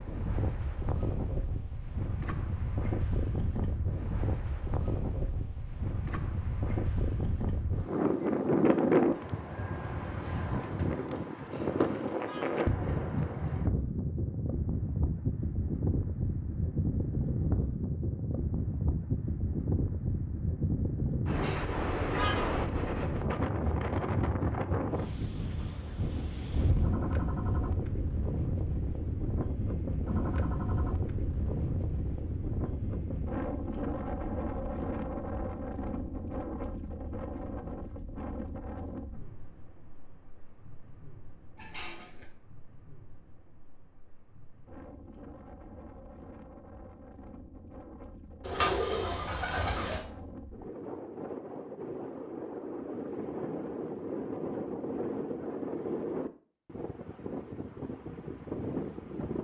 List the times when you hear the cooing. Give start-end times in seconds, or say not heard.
48.4-50.0.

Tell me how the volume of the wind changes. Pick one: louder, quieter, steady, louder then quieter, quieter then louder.
quieter then louder.